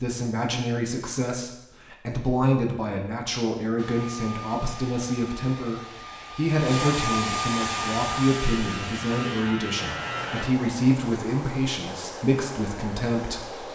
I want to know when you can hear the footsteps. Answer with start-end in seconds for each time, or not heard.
not heard.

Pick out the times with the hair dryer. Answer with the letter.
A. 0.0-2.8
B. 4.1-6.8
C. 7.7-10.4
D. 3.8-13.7
D.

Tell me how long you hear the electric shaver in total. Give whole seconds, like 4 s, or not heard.
3 s.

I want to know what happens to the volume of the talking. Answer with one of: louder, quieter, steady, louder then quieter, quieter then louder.
steady.